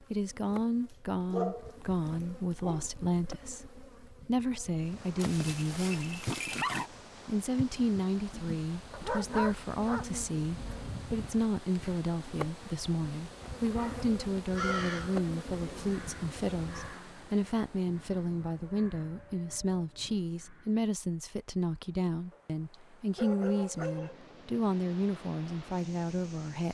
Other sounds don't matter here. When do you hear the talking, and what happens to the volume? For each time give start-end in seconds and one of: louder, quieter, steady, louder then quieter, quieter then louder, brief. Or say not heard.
0.1-6.3 steady
7.2-26.6 steady.